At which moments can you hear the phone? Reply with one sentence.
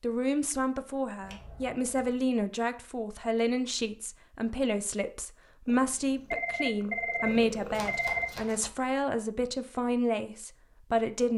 The phone can be heard from 6.0 to 8.5 s.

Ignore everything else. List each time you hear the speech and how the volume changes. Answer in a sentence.
The speech can be heard from 0.0 to 11.3 s, at a steady volume.